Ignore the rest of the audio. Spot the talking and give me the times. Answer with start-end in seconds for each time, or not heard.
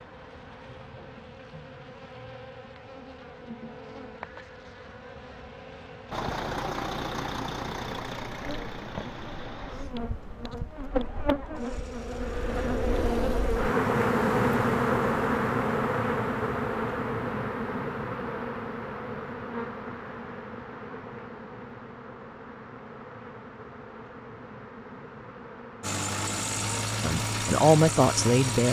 27.0-28.6.